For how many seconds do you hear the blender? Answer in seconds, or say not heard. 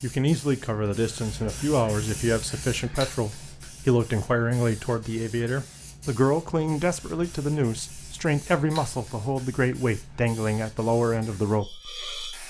not heard.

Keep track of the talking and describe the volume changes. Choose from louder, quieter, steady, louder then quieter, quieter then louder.
steady.